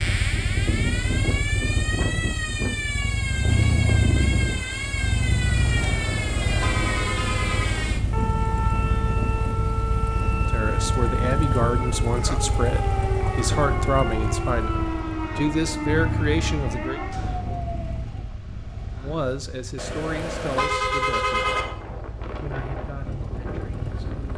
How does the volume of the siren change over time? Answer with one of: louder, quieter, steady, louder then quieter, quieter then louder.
steady.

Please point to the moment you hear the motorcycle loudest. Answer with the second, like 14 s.
4 s.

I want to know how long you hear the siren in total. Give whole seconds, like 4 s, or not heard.
18 s.